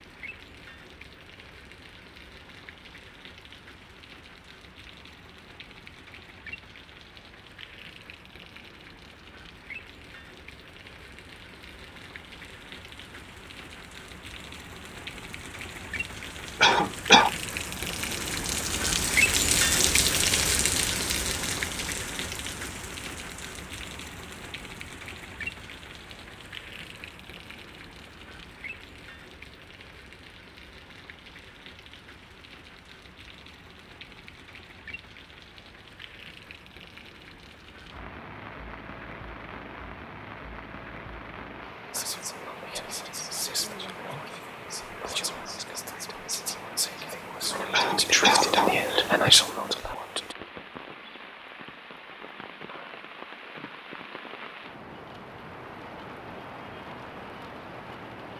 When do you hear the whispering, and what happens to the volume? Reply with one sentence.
The whispering can be heard from 41.9 to 50.4 s, getting louder.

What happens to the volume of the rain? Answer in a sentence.
The loudness of the rain goes up, then down.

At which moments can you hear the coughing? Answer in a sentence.
You can hear the coughing from 16.6 to 17.3 s and from 47.7 to 48.8 s.